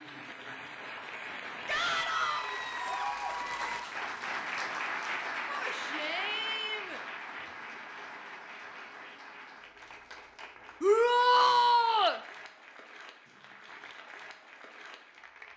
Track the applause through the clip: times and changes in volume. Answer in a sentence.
The applause can be heard from 0.0 to 15.5 s, getting quieter.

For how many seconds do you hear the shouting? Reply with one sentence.
The shouting can be heard for 4 seconds in total.